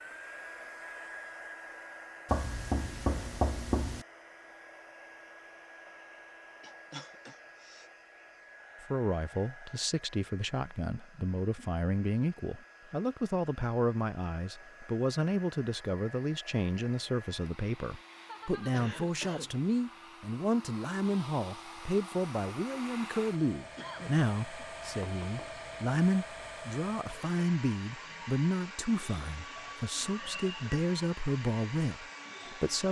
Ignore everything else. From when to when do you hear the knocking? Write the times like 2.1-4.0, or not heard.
2.2-4.0, 25.0-25.4.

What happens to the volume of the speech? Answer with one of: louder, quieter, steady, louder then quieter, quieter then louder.
steady.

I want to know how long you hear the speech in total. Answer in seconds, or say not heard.
24 s.